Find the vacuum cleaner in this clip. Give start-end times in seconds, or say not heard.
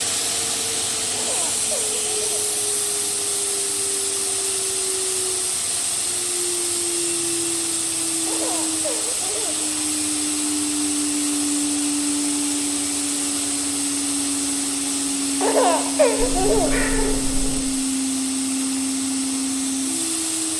0.0-20.5.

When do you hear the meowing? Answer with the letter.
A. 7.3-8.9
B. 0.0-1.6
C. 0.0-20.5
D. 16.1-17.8
D.